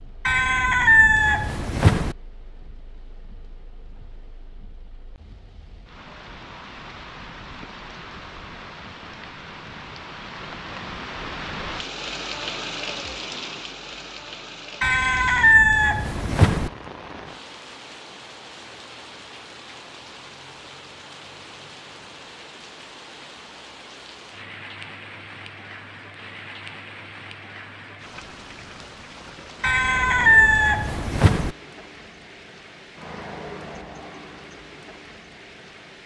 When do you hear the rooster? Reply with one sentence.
You can hear the rooster from 0.2 to 2.1 s, from 14.8 to 16.7 s and from 29.6 to 31.6 s.